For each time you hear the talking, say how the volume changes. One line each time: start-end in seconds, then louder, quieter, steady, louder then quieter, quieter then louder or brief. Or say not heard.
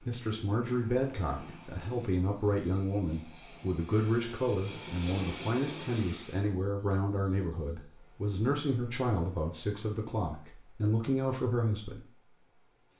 0.1-12.0 steady.